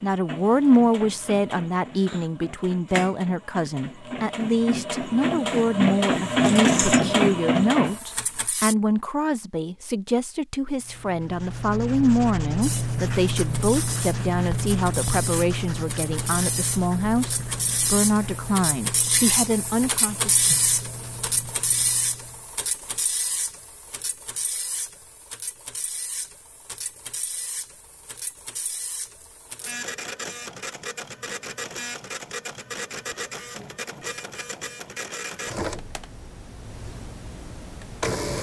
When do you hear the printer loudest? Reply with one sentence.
The loudest moment of the printer is at 7 seconds.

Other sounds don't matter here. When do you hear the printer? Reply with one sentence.
You can hear the printer from 0.0 to 8.8 s and from 12.6 to 38.3 s.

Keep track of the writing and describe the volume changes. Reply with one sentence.
The volume of the writing goes down.